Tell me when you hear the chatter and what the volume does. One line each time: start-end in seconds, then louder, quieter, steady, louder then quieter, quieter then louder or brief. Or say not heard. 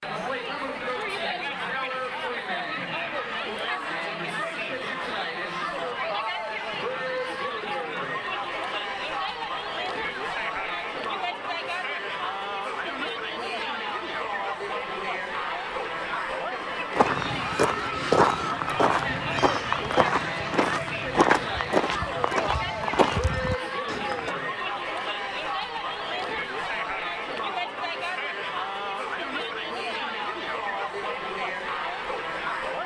0.0-32.8 steady.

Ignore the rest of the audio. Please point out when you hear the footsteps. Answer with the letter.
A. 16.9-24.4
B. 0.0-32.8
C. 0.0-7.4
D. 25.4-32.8
A.